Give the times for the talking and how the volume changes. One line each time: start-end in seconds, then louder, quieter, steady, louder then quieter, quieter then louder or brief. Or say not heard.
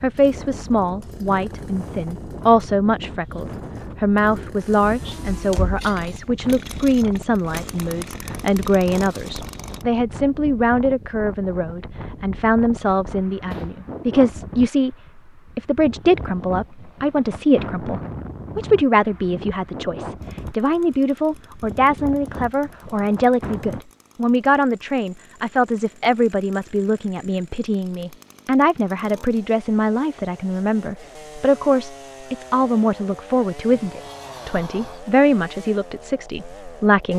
0.0-14.9 steady
15.6-37.1 steady.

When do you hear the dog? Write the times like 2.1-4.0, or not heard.
not heard.